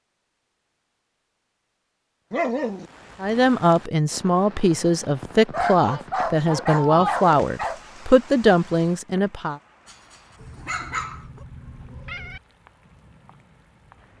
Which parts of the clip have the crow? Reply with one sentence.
You can't hear the crow here.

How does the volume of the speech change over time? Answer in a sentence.
The loudness of the speech stays about the same.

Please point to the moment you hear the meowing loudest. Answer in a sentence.
The volume of the meowing peaks at 12 seconds.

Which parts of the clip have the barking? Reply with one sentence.
You can hear the barking from 2.3 to 2.9 s, from 5.5 to 7.8 s and from 9.8 to 11.2 s.